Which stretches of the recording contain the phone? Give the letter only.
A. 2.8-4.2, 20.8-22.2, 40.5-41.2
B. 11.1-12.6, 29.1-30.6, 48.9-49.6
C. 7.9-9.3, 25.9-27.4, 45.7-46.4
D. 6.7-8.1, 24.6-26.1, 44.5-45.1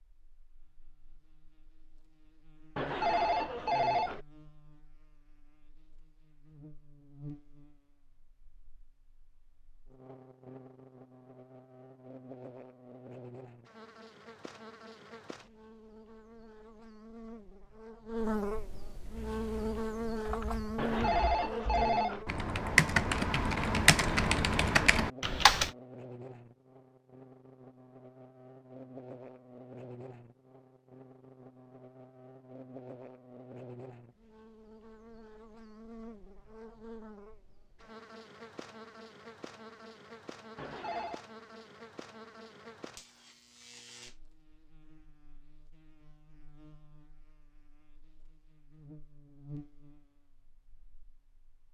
A.